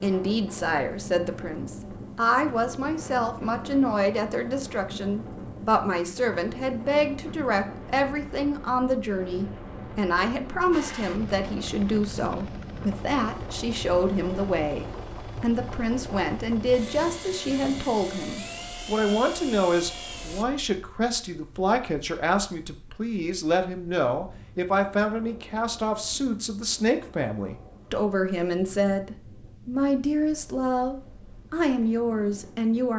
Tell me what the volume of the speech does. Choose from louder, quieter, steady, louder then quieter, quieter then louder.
steady.